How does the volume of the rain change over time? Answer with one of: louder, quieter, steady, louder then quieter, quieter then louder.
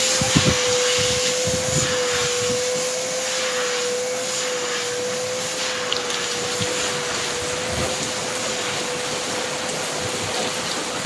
quieter then louder.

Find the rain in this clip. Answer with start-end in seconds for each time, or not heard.
0.0-11.0.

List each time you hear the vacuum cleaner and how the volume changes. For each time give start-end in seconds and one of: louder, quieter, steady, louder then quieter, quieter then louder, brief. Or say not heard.
0.0-11.0 quieter.